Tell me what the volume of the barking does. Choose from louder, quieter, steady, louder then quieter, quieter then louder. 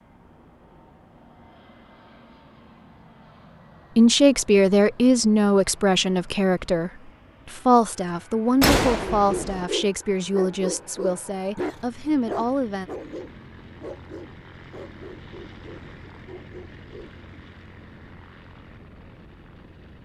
quieter.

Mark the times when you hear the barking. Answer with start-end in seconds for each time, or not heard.
9.2-17.1.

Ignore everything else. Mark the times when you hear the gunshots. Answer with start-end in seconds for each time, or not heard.
8.6-9.7.